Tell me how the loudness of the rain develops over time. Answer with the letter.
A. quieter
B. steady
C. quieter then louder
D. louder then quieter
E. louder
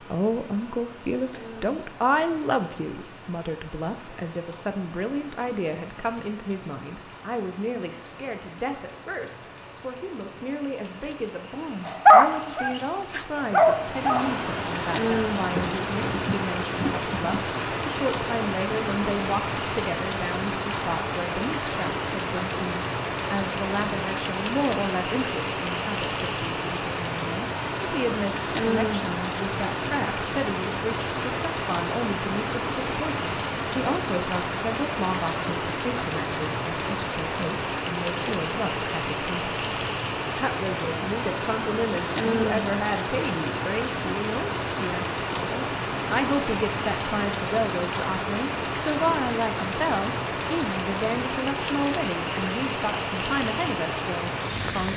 E.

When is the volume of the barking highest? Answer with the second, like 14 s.
12 s.